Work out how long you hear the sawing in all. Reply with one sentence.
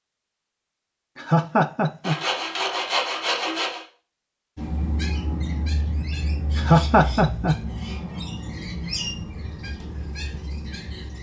You can hear the sawing for 2 seconds altogether.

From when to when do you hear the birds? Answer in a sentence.
You can hear the birds from 4.5 to 11.1 s.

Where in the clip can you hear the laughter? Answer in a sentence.
You can hear the laughter from 1.1 to 2.2 s and from 6.5 to 7.6 s.